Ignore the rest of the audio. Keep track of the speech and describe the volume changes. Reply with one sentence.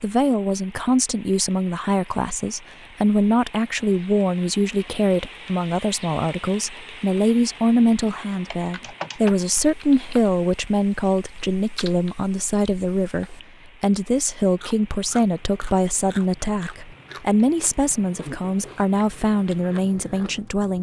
The loudness of the speech stays about the same.